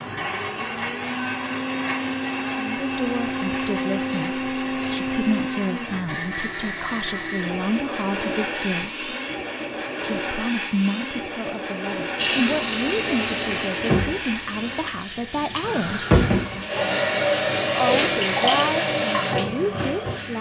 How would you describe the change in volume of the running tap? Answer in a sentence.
The loudness of the running tap goes down, then up.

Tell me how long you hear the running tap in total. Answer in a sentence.
The running tap can be heard for 8 seconds in total.